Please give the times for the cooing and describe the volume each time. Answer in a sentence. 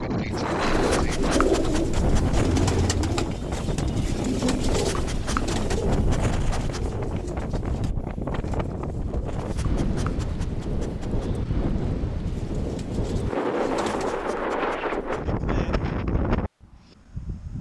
The cooing can be heard from 0.3 to 9.4 s, getting quieter; and briefly from 12.2 to 14.3 s.